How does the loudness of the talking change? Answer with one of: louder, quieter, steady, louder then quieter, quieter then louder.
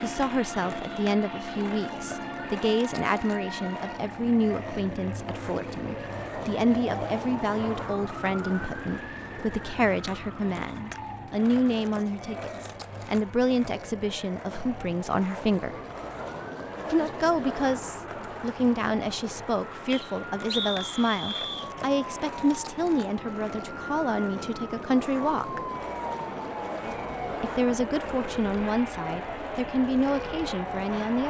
steady.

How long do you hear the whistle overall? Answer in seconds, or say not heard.
2 s.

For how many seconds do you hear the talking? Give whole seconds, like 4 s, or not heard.
28 s.